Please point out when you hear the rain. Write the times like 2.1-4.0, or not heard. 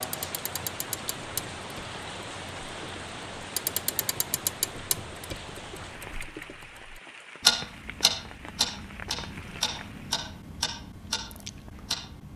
0.0-10.2.